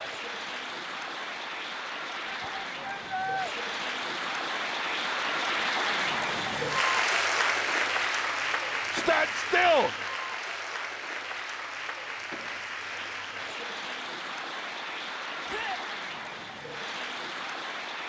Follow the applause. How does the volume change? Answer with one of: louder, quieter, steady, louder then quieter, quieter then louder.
louder then quieter.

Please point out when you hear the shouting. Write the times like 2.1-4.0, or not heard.
2.2-3.5, 8.9-9.9, 15.4-15.8.